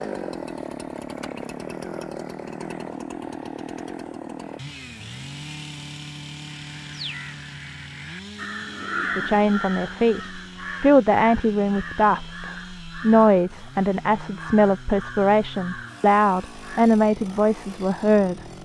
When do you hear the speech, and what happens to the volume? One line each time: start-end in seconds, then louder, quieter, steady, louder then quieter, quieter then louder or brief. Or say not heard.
9.2-18.4 steady.